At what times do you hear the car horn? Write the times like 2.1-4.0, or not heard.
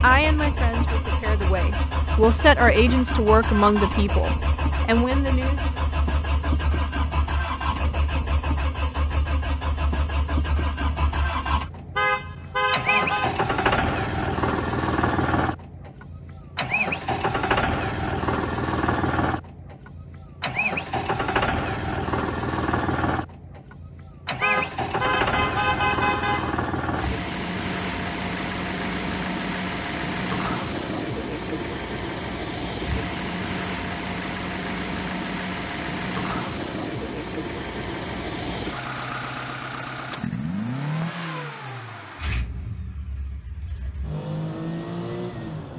11.9-13.3, 24.4-26.6.